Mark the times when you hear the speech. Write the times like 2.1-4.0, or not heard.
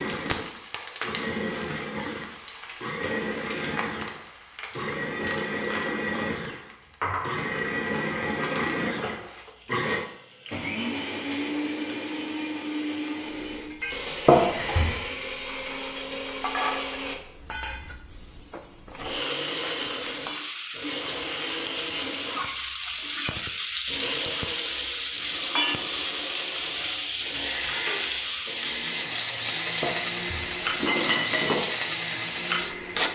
not heard.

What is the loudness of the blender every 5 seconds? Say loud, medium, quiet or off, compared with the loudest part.
loud, loud, loud, medium, medium, medium, medium.